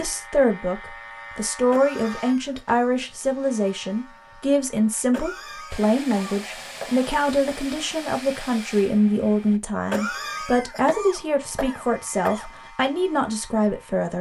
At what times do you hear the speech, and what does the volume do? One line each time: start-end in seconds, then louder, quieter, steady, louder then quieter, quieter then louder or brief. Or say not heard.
0.0-14.1 steady.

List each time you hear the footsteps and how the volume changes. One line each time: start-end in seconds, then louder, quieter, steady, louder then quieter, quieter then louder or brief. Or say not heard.
not heard.